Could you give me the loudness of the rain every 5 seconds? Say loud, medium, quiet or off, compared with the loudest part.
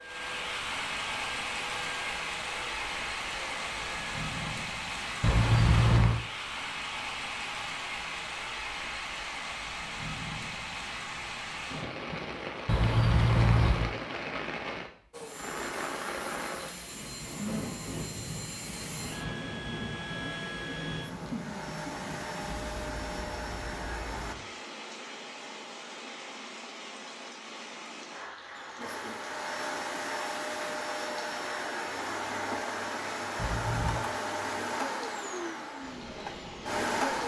loud, loud, loud, loud, medium, medium, medium, medium.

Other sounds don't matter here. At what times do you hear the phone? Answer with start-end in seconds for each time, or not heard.
not heard.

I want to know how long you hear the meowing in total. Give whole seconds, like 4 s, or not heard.
3 s.